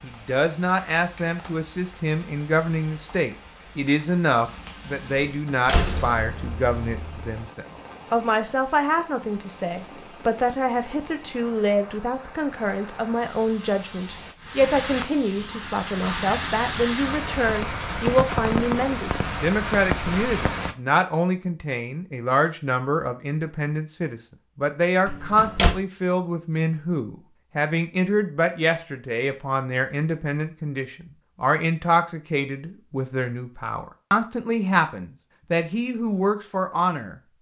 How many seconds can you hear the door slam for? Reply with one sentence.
The door slam can be heard for 3 seconds in total.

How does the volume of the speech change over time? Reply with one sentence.
The volume of the speech stays about the same.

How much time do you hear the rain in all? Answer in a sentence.
You can hear the rain for 21 seconds altogether.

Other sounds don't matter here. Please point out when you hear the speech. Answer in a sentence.
The speech can be heard from 0.0 to 37.1 s.